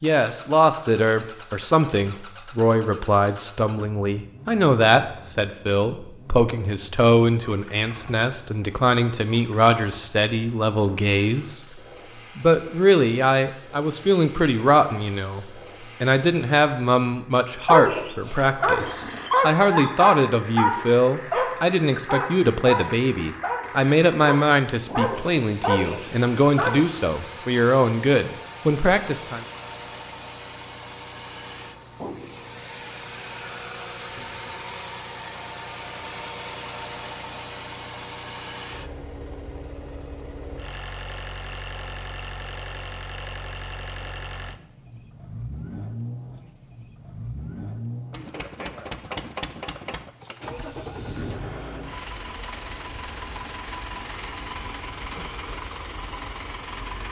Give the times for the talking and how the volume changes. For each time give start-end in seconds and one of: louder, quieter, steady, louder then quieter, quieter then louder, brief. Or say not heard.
0.0-29.4 steady.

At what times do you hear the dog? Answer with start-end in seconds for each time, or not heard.
17.6-26.9.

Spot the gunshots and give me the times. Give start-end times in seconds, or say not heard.
not heard.